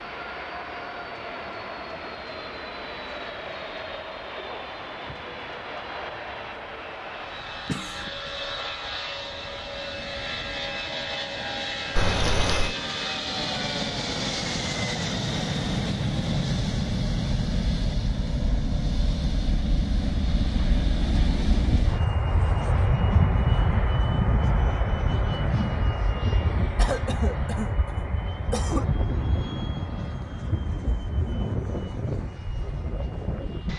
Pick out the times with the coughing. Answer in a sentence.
The coughing can be heard from 7.7 to 8.1 s, from 11.9 to 12.8 s and from 26.8 to 28.9 s.